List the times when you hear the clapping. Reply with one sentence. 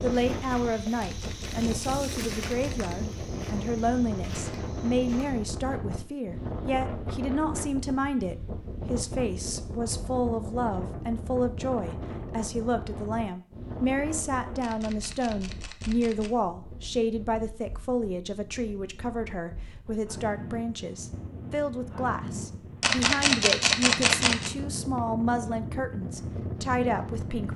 The clapping can't be heard in this clip.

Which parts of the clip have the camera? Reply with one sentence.
You can hear the camera from 1.0 to 3.0 s, from 14.6 to 16.3 s and from 22.8 to 24.5 s.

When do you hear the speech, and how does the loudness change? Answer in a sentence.
The speech can be heard from 0.0 to 27.5 s, at a steady volume.